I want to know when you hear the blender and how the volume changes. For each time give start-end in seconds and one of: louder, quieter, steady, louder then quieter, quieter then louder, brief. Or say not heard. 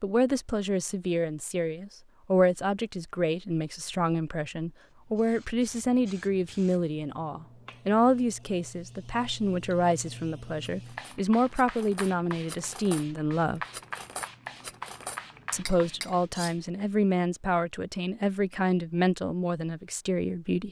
not heard.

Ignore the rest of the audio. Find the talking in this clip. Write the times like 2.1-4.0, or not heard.
0.0-13.6, 15.5-20.6.